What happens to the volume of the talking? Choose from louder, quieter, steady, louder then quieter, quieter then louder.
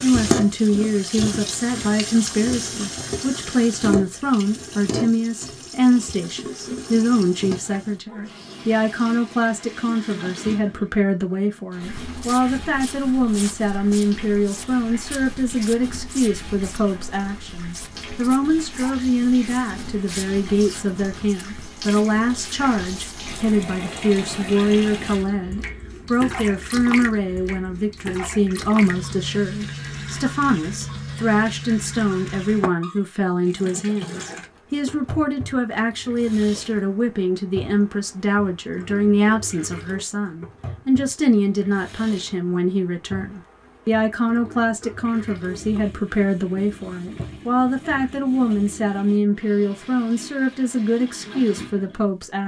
steady.